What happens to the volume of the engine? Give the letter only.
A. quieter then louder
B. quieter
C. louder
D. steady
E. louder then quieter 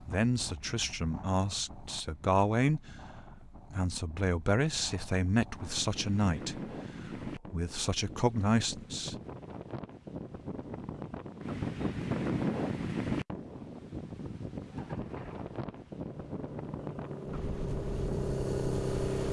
C.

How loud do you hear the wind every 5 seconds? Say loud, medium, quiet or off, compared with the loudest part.
quiet, medium, loud, medium.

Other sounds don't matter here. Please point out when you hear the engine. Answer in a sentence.
You can hear the engine from 14.7 to 19.2 s.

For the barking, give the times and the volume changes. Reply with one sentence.
You can't hear the barking here.